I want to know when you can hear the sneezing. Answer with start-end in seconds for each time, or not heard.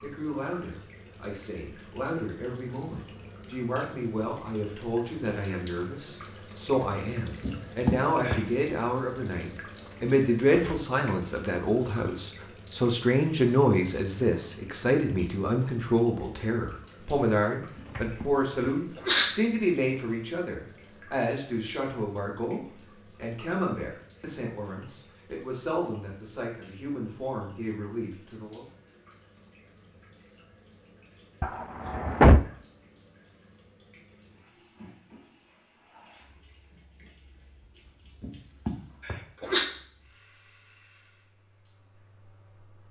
7.4-8.4, 17.8-19.3, 38.2-39.6.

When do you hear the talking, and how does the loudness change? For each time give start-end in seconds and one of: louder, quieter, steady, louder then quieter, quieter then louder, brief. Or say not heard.
0.0-28.6 louder then quieter.